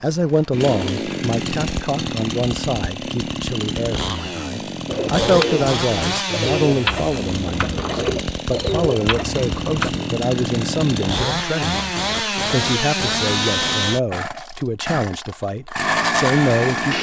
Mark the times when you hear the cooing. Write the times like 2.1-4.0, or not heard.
4.8-9.9.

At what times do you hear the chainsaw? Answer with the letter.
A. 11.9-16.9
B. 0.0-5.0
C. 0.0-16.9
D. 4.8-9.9
C.